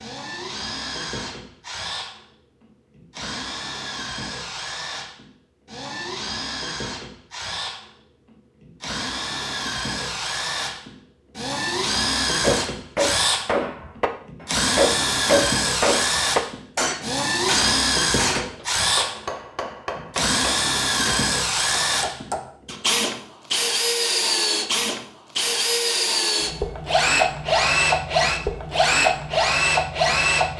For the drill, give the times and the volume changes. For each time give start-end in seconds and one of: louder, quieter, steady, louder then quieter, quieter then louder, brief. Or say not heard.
0.0-30.5 louder.